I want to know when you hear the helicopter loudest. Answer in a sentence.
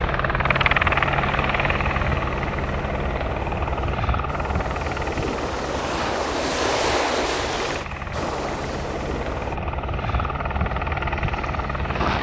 The loudest moment of the helicopter is at 1 second.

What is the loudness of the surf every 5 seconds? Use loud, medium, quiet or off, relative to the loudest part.
medium, loud, off.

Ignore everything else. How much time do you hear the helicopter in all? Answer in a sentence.
You can hear the helicopter for 12 seconds altogether.